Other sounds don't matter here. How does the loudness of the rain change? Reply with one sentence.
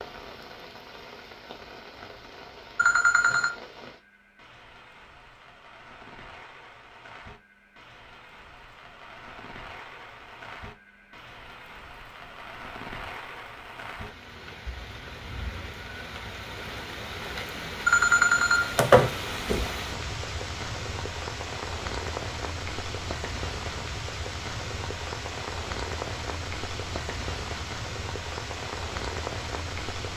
The volume of the rain goes up.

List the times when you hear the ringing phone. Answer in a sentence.
The ringing phone can be heard from 2.8 to 3.5 s and from 17.9 to 19.7 s.